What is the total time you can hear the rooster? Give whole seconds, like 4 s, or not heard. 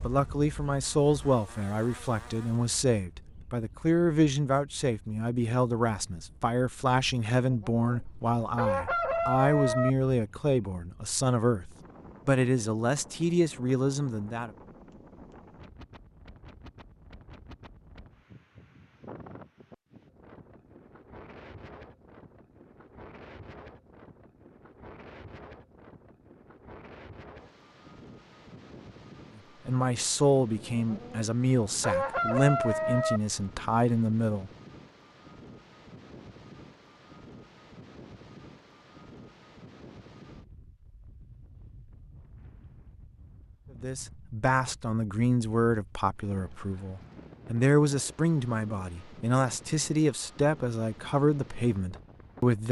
5 s.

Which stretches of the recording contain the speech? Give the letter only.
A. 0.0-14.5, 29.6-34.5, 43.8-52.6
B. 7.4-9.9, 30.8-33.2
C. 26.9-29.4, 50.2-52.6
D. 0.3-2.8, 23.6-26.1
A.